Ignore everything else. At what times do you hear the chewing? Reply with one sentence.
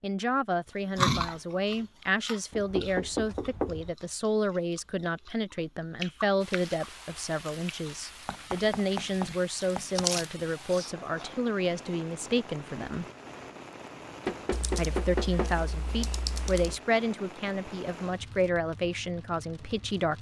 You can hear the chewing from 0.9 to 11.3 s.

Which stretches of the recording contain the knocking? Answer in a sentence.
The knocking can be heard from 2.5 to 3.9 s, from 8.2 to 10.1 s and from 14.2 to 15.6 s.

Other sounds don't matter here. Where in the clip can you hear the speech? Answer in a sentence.
The speech can be heard from 0.0 to 13.1 s and from 14.8 to 20.1 s.